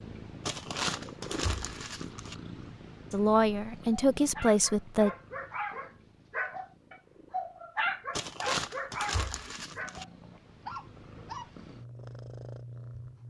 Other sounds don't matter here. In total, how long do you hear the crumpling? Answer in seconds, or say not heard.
4 s.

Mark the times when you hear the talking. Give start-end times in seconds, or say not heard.
3.1-5.1.